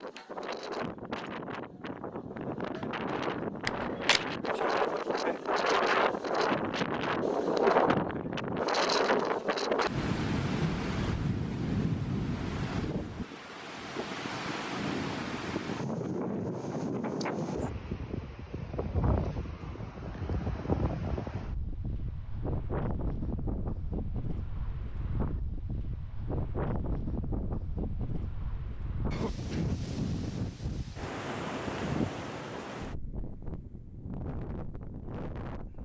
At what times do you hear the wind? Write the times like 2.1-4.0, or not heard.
0.0-35.8.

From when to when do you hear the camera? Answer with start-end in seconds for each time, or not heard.
3.6-4.2.